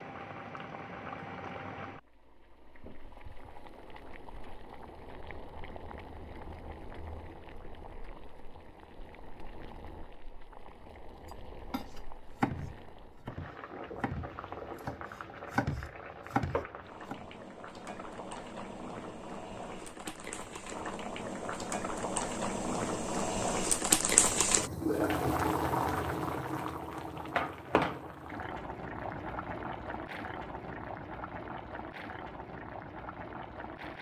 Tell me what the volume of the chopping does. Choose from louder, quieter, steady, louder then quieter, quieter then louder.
quieter then louder.